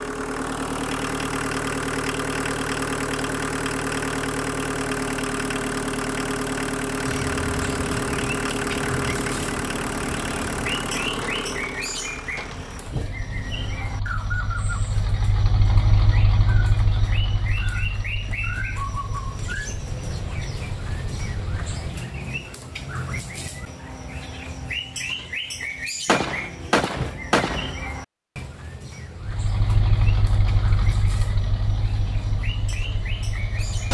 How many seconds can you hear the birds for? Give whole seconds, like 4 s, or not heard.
27 s.